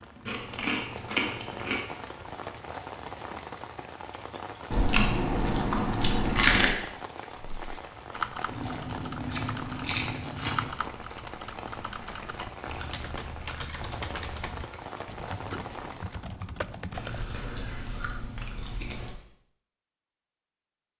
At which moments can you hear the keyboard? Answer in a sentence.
The keyboard can be heard from 7.3 to 17.4 s.